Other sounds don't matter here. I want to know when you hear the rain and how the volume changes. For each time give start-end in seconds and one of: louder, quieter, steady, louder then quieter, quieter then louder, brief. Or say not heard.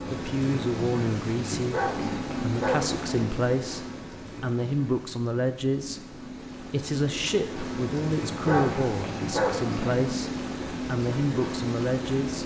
0.0-12.4 quieter then louder.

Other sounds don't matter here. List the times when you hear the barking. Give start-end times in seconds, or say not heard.
1.7-3.3, 8.4-10.1.